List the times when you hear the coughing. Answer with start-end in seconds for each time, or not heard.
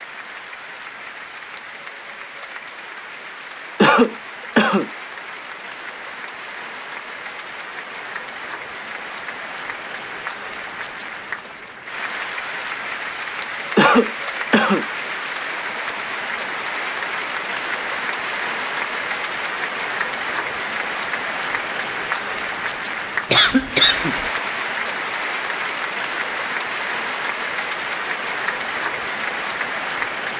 3.8-4.9, 13.8-14.8, 23.3-24.3.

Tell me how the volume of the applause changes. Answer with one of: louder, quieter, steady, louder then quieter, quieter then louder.
louder.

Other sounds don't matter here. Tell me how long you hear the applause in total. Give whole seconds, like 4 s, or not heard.
30 s.